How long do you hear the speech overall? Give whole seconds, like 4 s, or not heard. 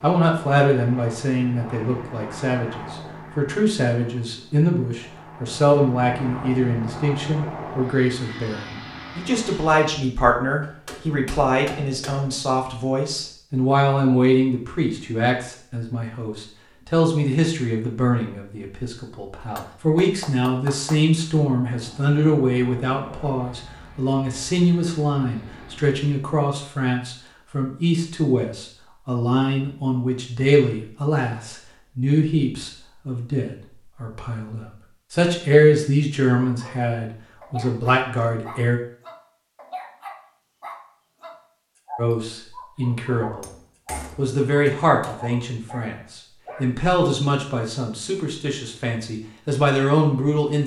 47 s.